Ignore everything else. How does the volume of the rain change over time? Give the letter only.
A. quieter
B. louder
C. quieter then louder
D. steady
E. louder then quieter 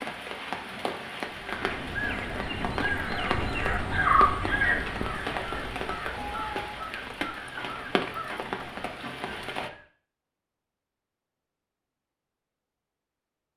D.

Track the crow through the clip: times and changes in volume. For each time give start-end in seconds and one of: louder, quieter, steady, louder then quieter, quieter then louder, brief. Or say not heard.
1.4-9.8 louder then quieter.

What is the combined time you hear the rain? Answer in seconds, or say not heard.
10 s.